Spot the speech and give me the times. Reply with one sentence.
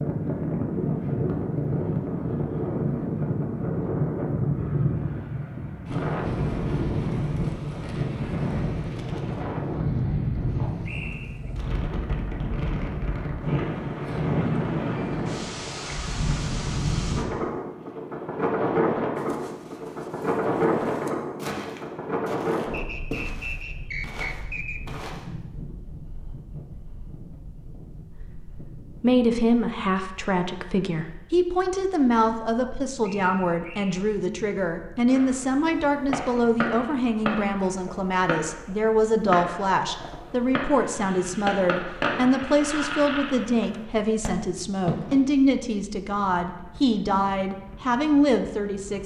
The speech can be heard from 28.1 to 49.0 s.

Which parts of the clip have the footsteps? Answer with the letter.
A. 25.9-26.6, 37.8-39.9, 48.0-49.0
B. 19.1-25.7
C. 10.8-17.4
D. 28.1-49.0
B.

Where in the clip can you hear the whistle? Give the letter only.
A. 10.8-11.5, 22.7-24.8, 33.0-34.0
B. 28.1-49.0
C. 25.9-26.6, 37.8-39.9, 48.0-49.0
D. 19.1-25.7
A.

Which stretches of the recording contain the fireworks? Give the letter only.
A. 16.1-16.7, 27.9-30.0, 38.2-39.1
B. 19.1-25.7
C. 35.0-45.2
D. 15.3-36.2
C.